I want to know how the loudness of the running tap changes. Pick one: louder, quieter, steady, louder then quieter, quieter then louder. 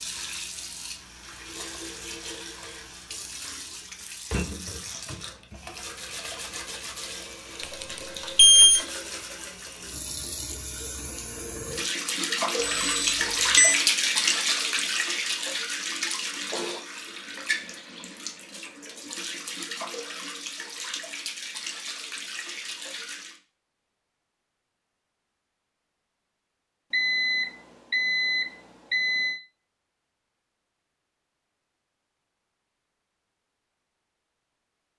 louder then quieter.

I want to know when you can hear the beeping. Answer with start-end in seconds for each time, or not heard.
7.6-8.8, 12.6-13.8, 26.9-29.4.